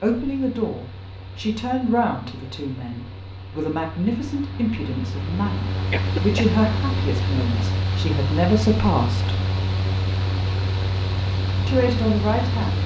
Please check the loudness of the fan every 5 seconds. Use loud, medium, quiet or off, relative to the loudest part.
quiet, loud, loud.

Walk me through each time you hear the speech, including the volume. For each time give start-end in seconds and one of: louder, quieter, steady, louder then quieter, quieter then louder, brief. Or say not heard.
0.0-9.3 quieter then louder
11.7-12.8 brief.